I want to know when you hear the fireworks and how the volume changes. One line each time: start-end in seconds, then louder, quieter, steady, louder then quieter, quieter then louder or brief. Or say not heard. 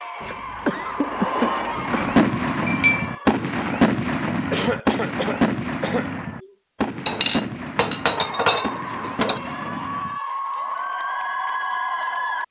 1.7-10.2 quieter.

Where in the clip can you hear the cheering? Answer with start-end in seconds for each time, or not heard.
0.0-3.5, 8.1-12.4.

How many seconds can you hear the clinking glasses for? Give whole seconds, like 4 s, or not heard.
4 s.